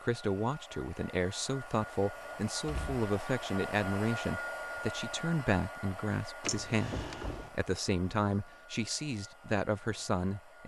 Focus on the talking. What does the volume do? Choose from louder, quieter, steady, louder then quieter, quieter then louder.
steady.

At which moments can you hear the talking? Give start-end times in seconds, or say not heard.
0.0-10.6.